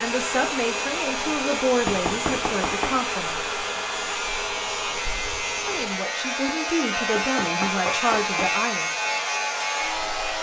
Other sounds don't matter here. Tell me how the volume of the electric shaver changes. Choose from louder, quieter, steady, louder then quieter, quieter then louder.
louder.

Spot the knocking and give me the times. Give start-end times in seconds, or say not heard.
1.9-3.0, 7.2-8.5.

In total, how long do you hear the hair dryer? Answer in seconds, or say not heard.
10 s.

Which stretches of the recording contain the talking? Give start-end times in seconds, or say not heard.
0.0-3.5, 5.7-8.9.